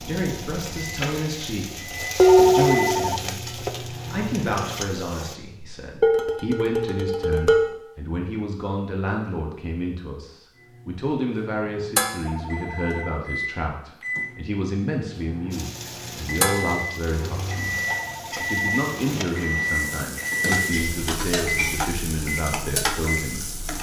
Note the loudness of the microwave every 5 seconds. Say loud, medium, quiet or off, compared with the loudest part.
medium, off, medium, loud, loud.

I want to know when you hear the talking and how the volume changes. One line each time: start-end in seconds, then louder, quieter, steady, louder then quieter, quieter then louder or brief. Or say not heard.
0.0-23.5 steady.